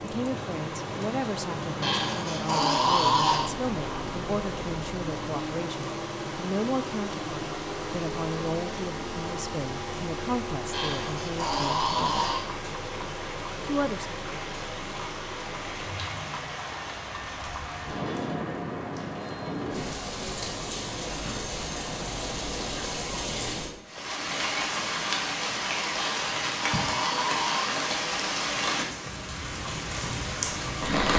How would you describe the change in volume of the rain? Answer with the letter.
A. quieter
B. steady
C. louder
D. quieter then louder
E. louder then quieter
C.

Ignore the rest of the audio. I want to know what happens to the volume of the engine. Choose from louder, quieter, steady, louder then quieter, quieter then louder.
quieter.